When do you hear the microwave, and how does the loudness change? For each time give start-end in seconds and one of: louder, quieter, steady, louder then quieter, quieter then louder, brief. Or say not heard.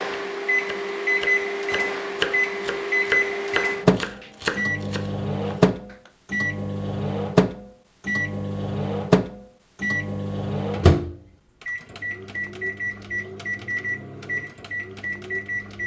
0.0-15.8 quieter.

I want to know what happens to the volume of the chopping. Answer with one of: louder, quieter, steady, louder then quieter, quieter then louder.
louder then quieter.